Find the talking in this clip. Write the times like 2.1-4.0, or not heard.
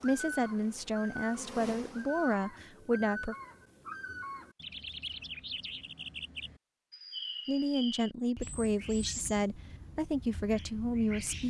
0.0-3.4, 7.5-11.4.